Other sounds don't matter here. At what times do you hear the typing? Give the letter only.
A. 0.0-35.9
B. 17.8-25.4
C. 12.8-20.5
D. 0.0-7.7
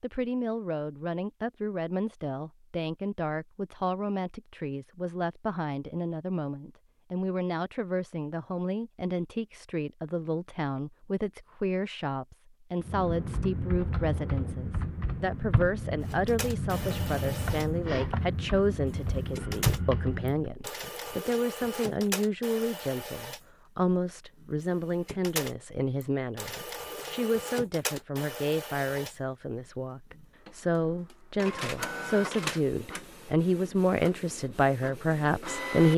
C.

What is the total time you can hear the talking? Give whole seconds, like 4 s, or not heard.
36 s.